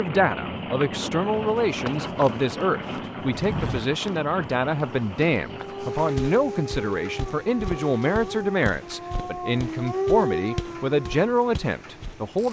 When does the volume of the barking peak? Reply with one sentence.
The volume of the barking peaks at 10 seconds.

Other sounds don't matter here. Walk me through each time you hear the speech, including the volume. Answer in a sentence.
The speech can be heard from 0.0 to 12.4 s, at a steady volume.